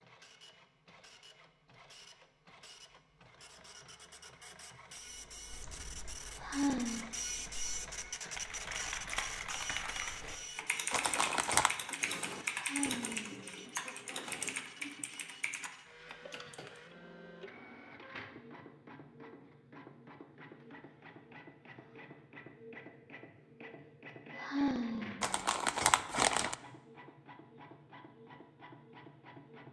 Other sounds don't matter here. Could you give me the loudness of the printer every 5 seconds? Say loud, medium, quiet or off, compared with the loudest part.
quiet, loud, medium, medium, medium, medium.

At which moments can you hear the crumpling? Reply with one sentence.
You can hear the crumpling from 10.9 to 11.7 s and from 25.2 to 26.6 s.